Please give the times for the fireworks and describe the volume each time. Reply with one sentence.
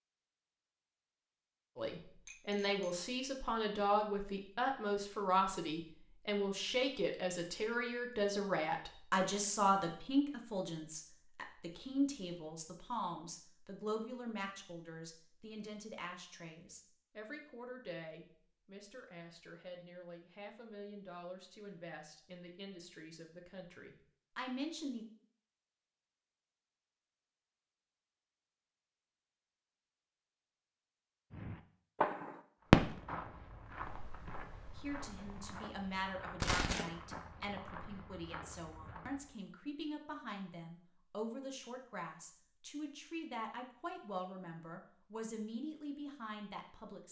You can hear the fireworks from 31.3 to 35.5 s, getting louder then quieter; and briefly from 36.4 to 36.9 s.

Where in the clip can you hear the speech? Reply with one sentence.
You can hear the speech from 1.8 to 25.1 s and from 34.8 to 47.0 s.